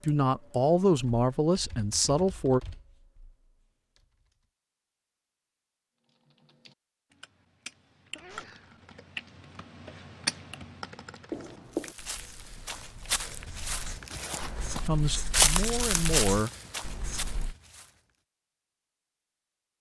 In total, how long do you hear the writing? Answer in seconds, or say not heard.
6 s.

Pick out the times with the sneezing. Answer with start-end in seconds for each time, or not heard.
8.1-8.8.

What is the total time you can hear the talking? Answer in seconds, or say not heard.
4 s.